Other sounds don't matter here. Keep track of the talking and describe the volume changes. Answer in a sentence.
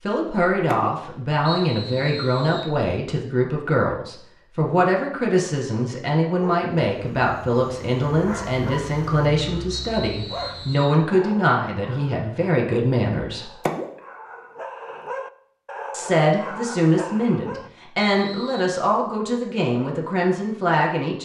The loudness of the talking stays about the same.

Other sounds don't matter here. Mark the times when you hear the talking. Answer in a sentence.
You can hear the talking from 0.1 to 13.5 s and from 15.9 to 21.2 s.